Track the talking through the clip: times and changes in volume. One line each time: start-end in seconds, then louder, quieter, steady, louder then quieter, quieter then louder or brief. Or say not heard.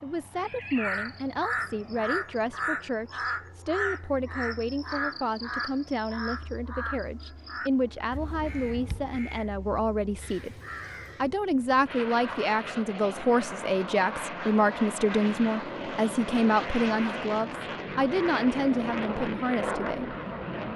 0.0-10.6 steady
11.2-20.1 steady.